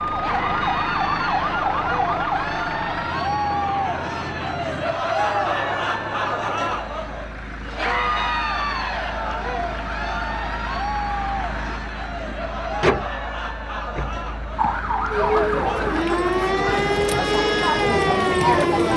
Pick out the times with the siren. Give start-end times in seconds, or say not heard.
0.0-2.5, 14.6-18.9.